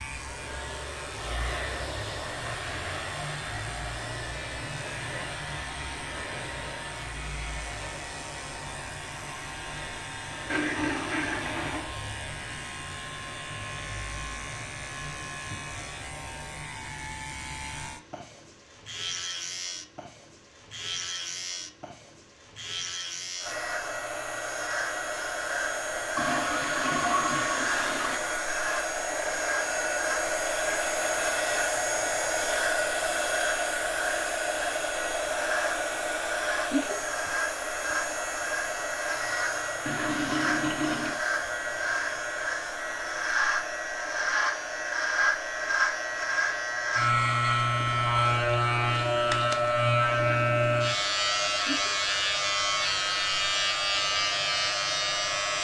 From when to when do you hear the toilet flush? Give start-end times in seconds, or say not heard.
10.4-11.9, 26.1-28.2, 39.9-41.2.